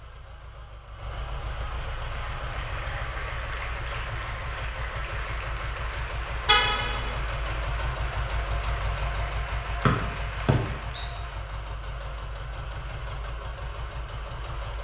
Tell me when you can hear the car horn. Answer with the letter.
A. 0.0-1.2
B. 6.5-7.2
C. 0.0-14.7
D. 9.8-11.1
B.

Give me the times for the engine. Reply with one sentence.
The engine can be heard from 0.0 to 14.7 s.